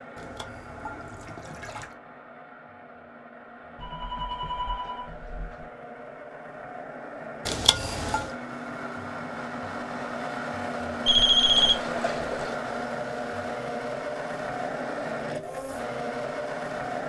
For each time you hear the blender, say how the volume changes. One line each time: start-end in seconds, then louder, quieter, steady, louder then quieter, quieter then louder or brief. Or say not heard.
0.0-17.0 louder.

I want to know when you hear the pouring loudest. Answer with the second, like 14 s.
8 s.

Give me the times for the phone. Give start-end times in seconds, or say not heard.
3.8-5.7, 11.1-11.8.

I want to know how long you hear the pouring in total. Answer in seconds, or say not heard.
4 s.